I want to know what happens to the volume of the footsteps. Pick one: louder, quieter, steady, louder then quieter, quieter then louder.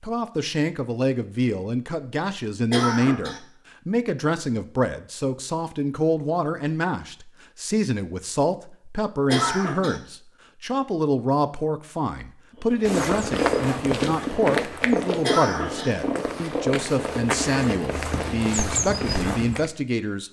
quieter then louder.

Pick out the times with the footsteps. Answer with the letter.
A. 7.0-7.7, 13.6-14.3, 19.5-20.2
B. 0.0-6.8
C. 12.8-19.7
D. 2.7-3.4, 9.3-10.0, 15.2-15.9
C.